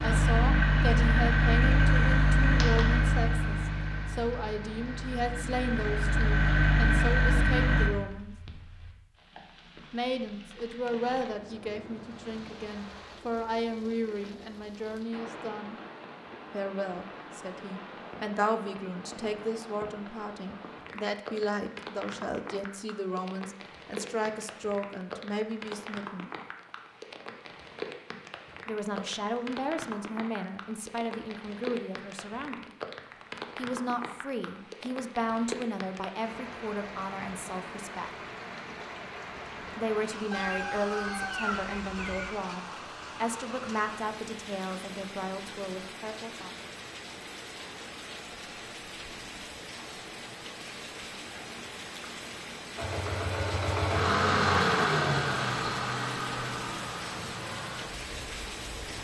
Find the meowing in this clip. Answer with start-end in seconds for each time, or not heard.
not heard.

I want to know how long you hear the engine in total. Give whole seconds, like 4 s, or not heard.
14 s.